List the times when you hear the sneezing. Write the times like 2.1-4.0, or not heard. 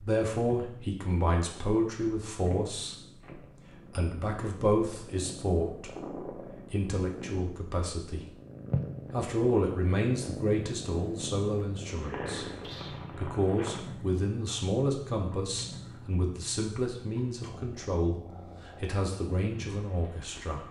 12.6-13.1.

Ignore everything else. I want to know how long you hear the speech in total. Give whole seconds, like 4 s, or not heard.
20 s.